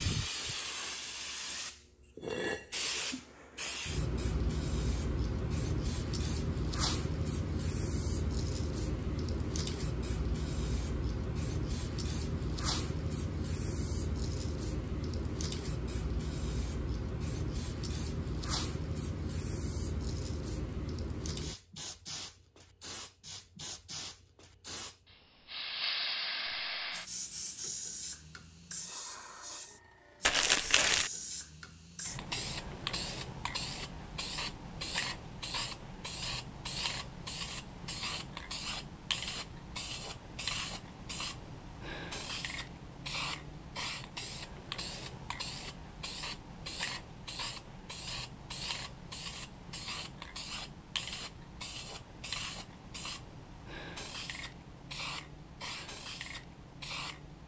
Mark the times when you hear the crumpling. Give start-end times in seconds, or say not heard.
30.2-31.1.